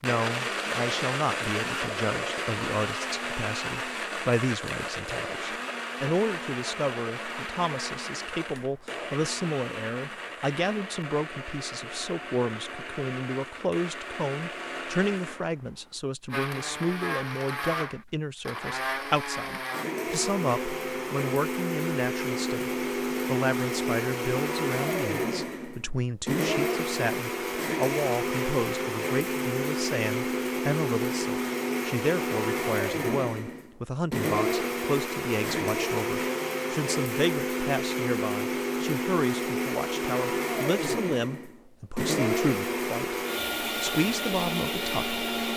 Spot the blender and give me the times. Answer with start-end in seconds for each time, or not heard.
0.0-45.5.